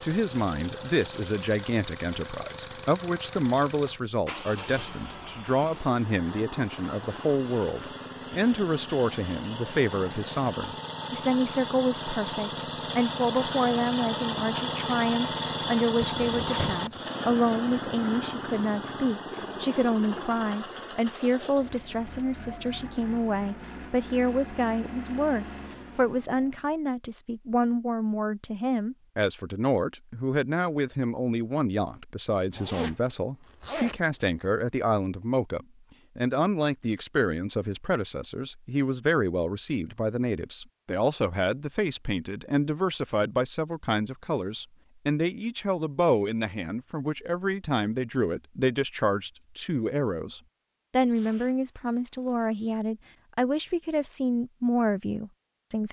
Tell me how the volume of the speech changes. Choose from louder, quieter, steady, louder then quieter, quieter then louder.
steady.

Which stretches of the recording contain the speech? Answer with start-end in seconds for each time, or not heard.
0.0-55.8.